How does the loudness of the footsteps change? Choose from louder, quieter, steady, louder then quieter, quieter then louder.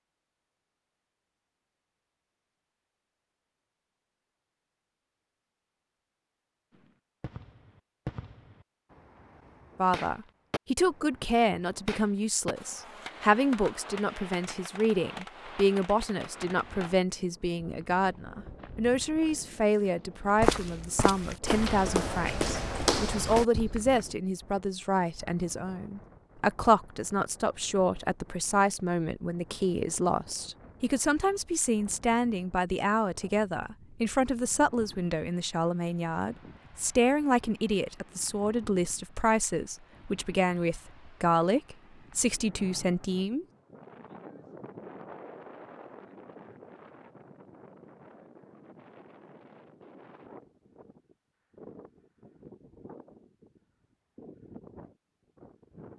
louder.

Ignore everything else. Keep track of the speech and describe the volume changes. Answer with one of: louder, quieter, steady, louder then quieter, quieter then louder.
steady.